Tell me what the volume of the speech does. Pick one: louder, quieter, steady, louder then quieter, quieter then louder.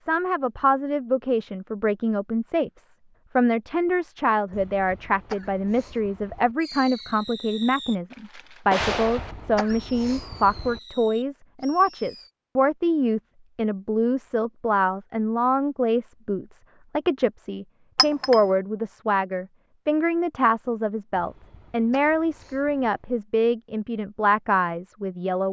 steady.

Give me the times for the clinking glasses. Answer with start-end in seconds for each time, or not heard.
17.9-18.4.